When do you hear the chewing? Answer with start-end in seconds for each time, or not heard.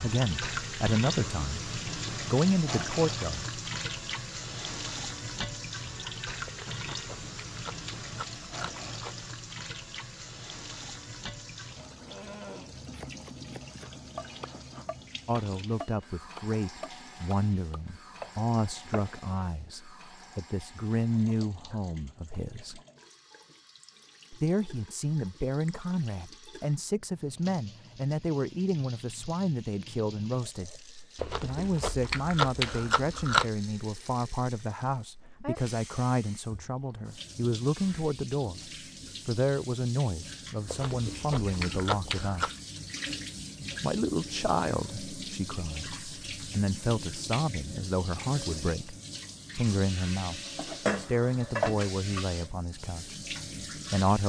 6.5-9.2, 31.1-33.5, 40.6-42.5.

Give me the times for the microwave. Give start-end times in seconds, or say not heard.
not heard.